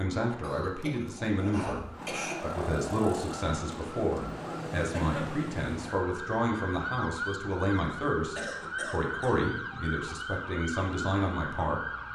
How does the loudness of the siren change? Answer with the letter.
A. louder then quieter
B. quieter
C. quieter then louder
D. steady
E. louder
D.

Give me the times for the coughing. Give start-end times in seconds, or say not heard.
0.4-2.4, 4.9-5.4, 8.3-9.4.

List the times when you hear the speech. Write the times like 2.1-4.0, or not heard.
0.0-11.8.